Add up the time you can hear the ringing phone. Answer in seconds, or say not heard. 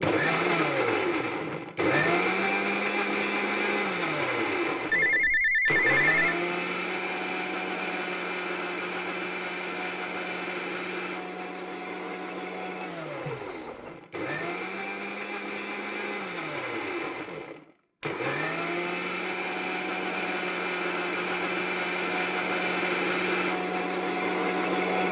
2 s.